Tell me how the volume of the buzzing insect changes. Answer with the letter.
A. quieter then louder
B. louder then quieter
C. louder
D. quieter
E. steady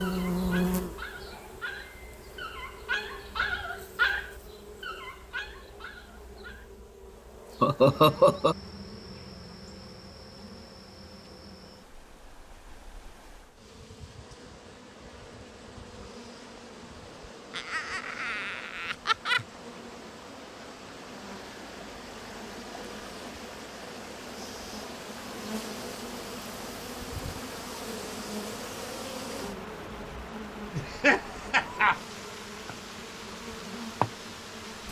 A.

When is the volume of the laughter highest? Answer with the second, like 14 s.
8 s.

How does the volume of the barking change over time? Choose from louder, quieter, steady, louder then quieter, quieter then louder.
louder then quieter.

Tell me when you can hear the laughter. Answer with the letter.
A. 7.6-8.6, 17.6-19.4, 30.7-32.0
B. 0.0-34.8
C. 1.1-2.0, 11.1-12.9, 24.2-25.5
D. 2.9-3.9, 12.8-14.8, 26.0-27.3
A.